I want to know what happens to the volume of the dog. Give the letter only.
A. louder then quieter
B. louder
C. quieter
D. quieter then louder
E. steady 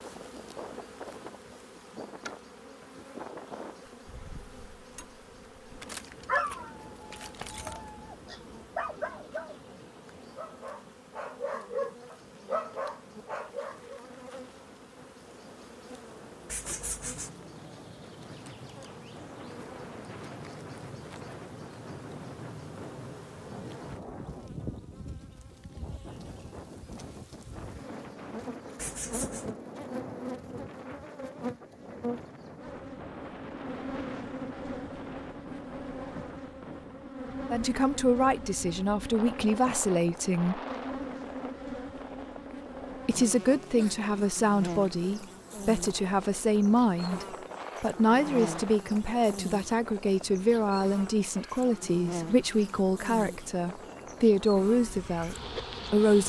D.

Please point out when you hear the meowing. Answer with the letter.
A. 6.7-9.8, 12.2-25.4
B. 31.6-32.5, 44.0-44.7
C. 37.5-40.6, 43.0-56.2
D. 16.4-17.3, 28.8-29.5
D.